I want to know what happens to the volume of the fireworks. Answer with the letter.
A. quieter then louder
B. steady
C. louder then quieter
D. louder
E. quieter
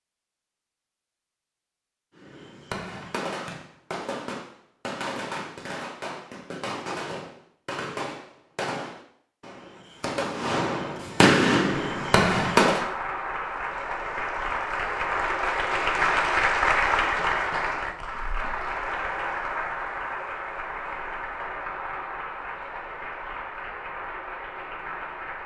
D.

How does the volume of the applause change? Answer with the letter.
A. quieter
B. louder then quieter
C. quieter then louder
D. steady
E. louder
B.